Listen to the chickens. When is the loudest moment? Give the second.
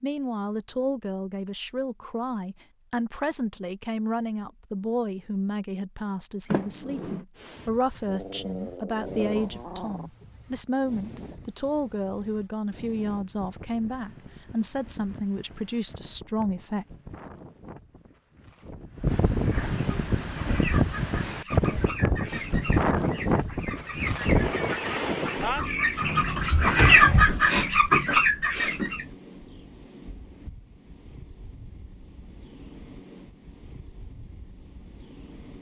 27 s.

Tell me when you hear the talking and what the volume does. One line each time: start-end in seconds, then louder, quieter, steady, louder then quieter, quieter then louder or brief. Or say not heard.
0.0-16.9 steady.